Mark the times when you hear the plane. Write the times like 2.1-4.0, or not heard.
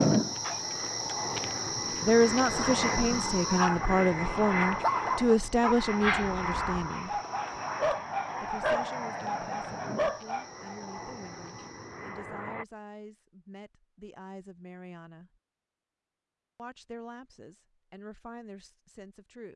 0.0-12.7.